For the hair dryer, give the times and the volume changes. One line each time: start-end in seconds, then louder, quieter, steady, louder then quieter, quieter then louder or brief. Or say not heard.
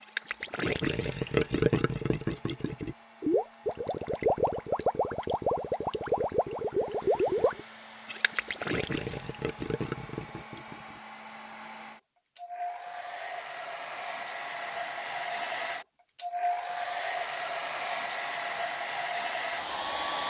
0.0-20.2 louder.